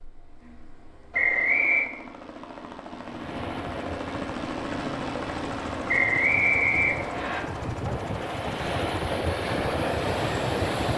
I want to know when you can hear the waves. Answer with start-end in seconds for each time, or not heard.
3.0-10.9.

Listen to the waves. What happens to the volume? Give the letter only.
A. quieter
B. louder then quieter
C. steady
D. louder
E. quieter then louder
D.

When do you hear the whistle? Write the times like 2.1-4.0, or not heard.
1.1-1.9, 5.8-7.4.